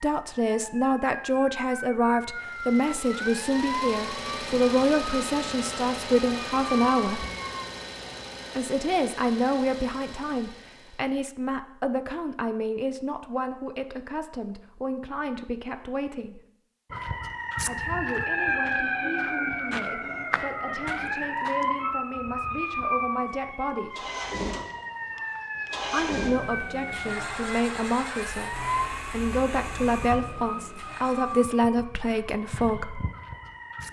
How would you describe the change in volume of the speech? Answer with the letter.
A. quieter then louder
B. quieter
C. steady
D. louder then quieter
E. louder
A.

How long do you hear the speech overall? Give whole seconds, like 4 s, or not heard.
29 s.